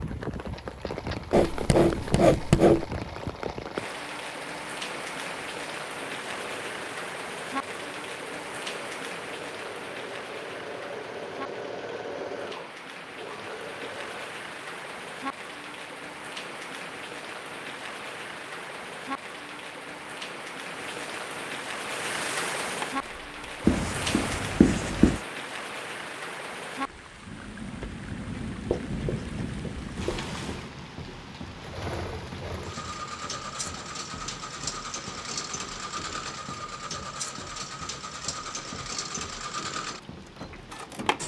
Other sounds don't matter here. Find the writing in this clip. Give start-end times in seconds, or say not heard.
1.3-2.9, 23.6-25.2, 28.7-30.2.